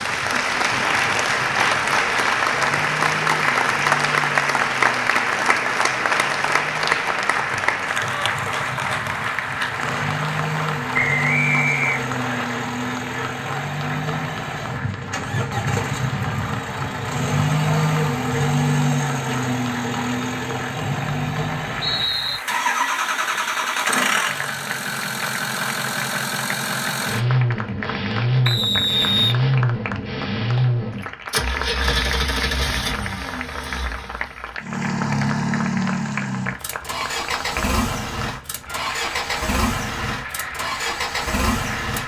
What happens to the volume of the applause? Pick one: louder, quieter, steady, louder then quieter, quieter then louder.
quieter.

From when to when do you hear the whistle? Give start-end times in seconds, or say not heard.
10.9-12.4, 20.8-22.4, 28.4-29.4.